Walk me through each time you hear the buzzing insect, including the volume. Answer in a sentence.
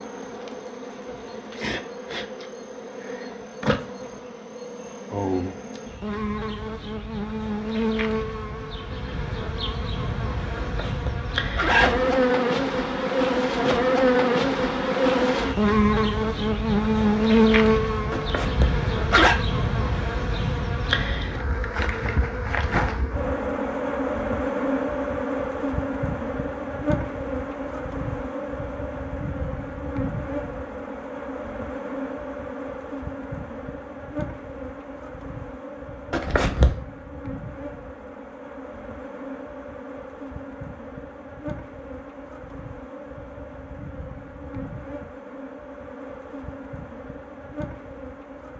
You can hear the buzzing insect from 0.0 to 48.5 s, getting louder then quieter.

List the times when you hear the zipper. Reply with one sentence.
The zipper can be heard from 10.6 to 12.1 s, from 18.1 to 19.4 s and from 36.1 to 36.8 s.